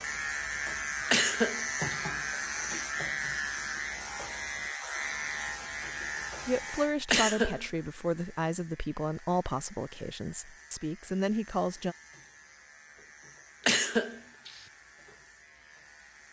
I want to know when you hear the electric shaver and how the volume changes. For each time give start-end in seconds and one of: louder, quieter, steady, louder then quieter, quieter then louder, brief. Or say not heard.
0.0-16.2 quieter.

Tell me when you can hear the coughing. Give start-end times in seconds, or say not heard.
1.1-2.0, 7.1-7.7, 13.7-14.6.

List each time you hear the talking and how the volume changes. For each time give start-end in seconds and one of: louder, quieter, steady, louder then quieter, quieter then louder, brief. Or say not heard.
6.5-11.9 quieter then louder.